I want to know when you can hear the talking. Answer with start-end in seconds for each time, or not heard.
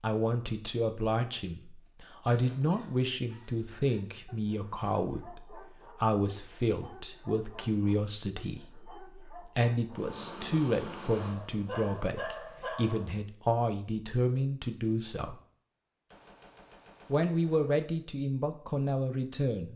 0.0-15.4, 17.1-19.7.